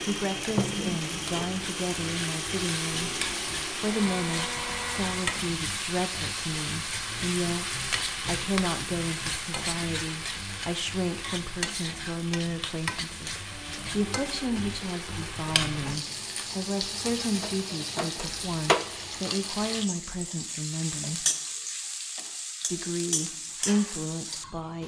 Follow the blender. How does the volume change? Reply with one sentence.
The loudness of the blender stays about the same.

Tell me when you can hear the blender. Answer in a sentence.
You can hear the blender from 0.0 to 5.2 s.